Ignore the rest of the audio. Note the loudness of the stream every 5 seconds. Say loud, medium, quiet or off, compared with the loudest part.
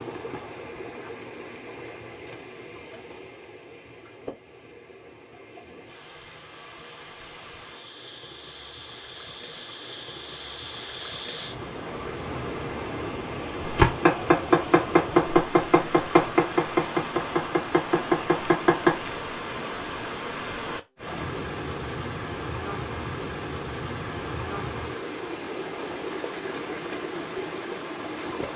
medium, medium, loud, loud, loud, loud.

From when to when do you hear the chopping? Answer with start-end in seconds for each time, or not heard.
13.7-19.0.